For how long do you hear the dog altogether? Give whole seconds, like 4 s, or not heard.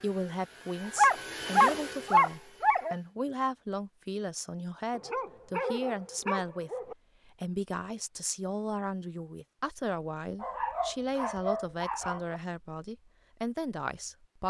6 s.